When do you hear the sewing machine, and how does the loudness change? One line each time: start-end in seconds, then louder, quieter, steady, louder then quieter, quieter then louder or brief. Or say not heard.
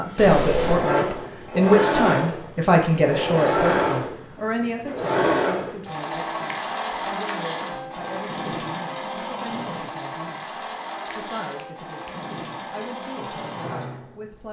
0.0-14.4 quieter.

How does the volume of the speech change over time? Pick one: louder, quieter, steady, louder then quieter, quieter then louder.
quieter.